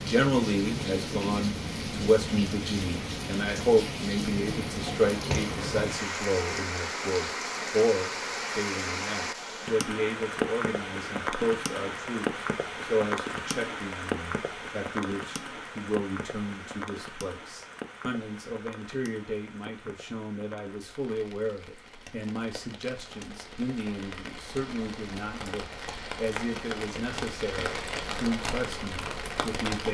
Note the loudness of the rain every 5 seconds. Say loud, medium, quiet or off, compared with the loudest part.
loud, loud, loud, medium, quiet, loud.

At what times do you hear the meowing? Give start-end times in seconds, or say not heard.
4.8-5.9.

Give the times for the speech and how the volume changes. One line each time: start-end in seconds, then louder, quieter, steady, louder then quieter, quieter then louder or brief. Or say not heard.
0.0-29.8 quieter.